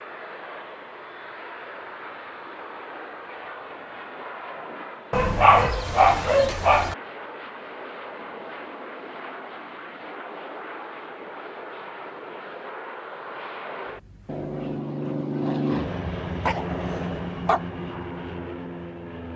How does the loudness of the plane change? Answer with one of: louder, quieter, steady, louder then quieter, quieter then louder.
louder.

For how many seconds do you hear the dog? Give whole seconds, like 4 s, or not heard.
3 s.